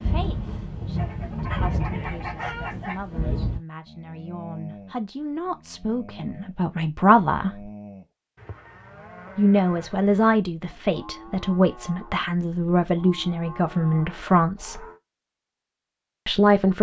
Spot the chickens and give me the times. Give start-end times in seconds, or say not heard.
0.9-3.0.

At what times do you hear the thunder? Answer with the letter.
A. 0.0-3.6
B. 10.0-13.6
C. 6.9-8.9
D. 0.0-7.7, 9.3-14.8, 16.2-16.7
A.